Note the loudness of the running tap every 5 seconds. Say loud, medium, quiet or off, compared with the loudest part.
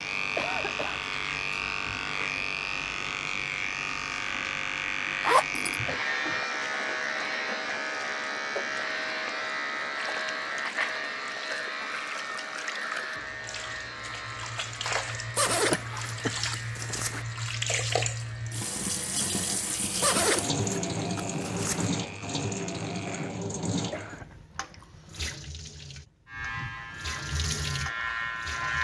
quiet, quiet, medium, loud, loud, medium.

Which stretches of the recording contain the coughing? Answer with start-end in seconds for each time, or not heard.
0.3-1.1, 15.7-16.4, 22.9-24.4.